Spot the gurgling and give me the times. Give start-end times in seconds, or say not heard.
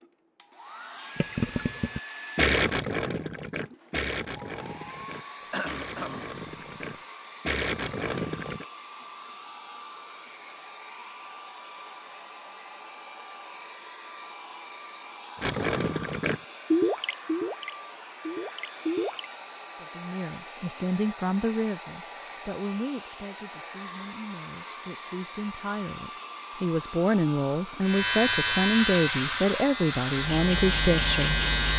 1.1-8.7, 15.4-19.2.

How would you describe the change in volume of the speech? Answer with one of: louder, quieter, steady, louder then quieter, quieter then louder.
quieter then louder.